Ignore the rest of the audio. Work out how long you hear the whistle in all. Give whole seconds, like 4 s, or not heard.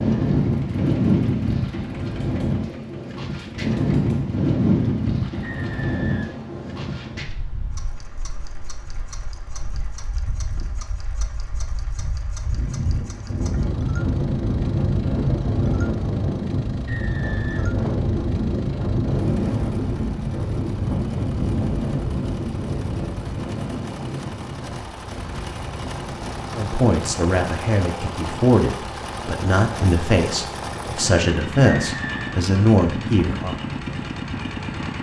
3 s.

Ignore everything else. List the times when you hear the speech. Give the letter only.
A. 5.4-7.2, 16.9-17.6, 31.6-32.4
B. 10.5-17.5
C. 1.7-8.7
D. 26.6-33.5
D.